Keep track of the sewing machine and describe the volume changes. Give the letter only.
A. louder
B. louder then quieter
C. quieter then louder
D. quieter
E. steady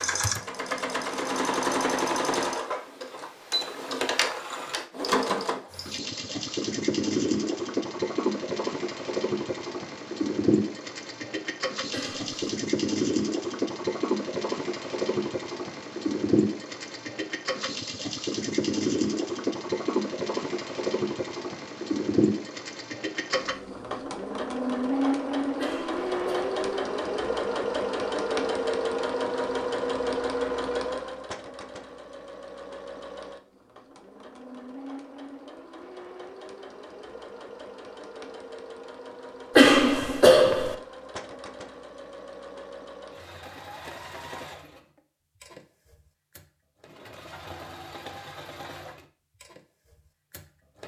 D.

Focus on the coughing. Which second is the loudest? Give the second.
40 s.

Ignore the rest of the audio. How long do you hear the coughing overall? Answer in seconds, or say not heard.
3 s.